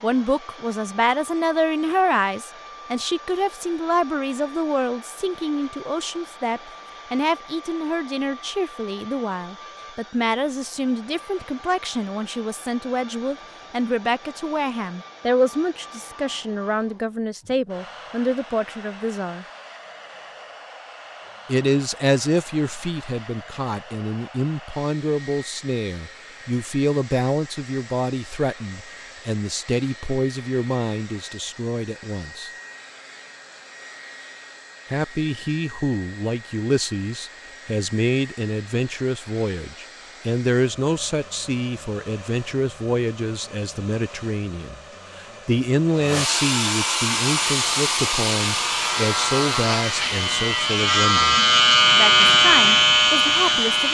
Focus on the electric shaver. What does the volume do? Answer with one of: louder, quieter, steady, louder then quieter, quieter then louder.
louder.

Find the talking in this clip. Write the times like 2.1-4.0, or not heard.
0.0-19.4, 21.4-32.5, 34.9-53.8.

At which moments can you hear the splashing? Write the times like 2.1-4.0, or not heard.
not heard.